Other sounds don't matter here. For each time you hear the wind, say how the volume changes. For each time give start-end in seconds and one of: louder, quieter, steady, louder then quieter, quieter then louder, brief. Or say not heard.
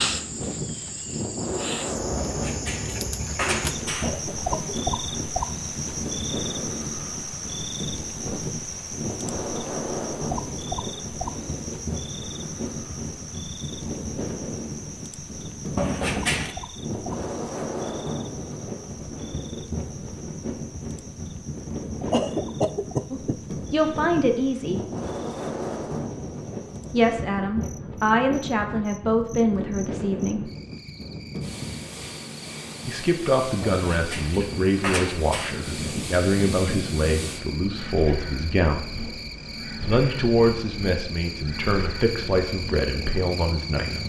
0.0-44.0 steady.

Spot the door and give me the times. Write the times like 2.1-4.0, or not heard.
2.1-4.1, 15.8-16.6, 33.6-35.5.